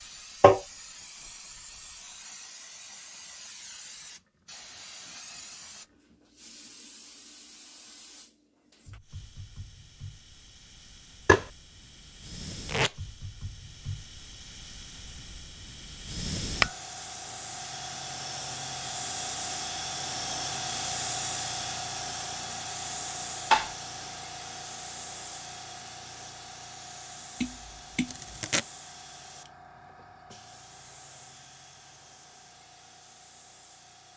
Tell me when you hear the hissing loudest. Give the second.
21 s.